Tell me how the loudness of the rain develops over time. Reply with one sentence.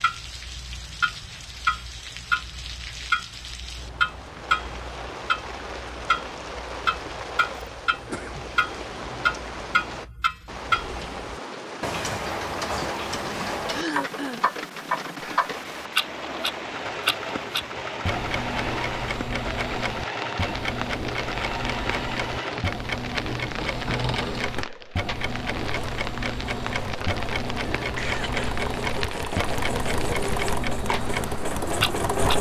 The loudness of the rain stays about the same.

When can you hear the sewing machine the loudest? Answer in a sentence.
The loudest moment of the sewing machine is at 32 seconds.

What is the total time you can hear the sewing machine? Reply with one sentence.
The sewing machine can be heard for 16 seconds in total.